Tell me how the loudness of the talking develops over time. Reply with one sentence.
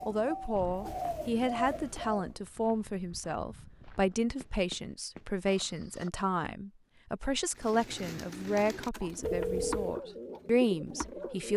The volume of the talking stays about the same.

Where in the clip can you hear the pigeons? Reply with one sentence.
You can hear the pigeons from 0.0 to 2.3 s and from 7.5 to 11.5 s.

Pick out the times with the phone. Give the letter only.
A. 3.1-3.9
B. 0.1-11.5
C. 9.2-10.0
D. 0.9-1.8
C.